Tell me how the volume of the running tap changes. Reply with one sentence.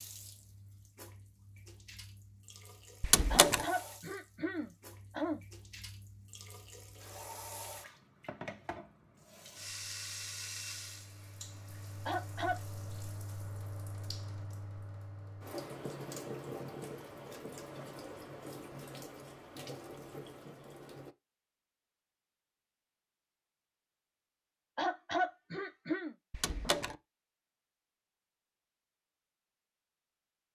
The volume of the running tap goes up.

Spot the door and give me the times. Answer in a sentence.
The door can be heard from 3.0 to 3.6 s and from 26.3 to 26.9 s.